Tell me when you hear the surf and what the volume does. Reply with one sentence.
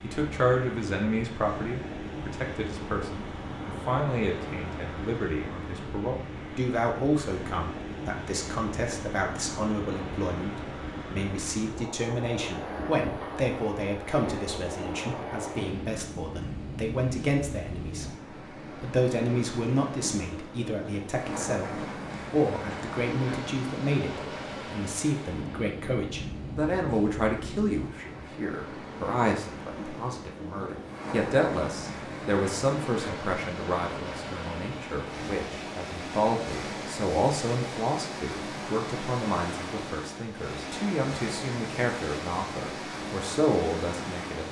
You can hear the surf from 0.0 to 44.4 s, at a steady volume.